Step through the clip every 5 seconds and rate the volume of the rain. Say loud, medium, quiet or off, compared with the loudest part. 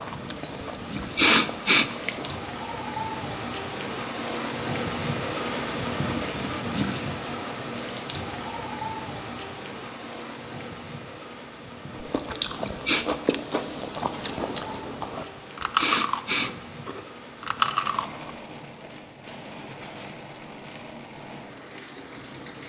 loud, loud, medium, medium, medium.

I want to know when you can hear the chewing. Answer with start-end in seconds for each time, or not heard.
0.0-2.4, 11.9-18.3.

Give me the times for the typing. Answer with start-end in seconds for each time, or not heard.
not heard.